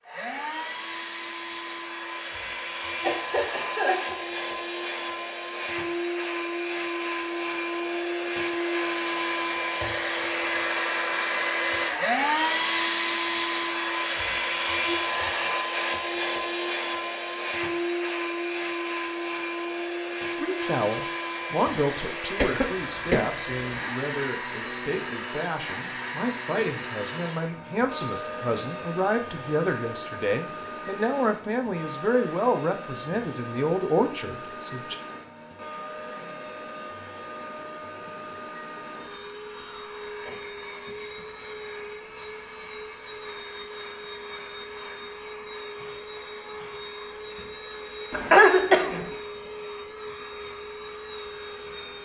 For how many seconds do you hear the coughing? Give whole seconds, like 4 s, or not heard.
4 s.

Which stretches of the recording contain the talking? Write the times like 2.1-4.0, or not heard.
20.4-35.0.